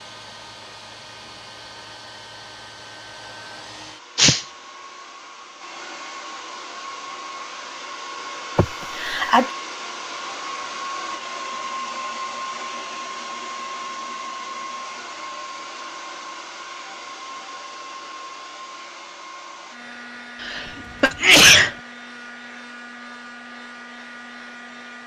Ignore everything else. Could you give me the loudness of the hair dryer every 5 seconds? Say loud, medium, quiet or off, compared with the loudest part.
medium, loud, loud, medium, medium.